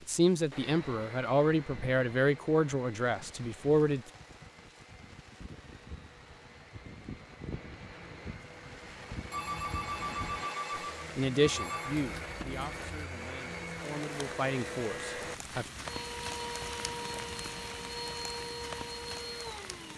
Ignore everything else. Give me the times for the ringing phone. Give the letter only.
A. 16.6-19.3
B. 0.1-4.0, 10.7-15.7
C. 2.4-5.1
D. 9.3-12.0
D.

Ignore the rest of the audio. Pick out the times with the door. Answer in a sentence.
The door can't be heard in this clip.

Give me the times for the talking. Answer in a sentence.
You can hear the talking from 0.1 to 4.0 s and from 10.7 to 15.7 s.